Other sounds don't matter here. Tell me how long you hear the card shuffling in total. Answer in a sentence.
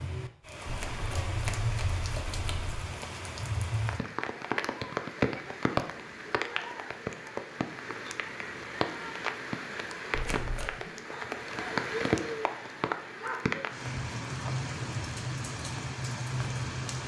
You can hear the card shuffling for 3 seconds altogether.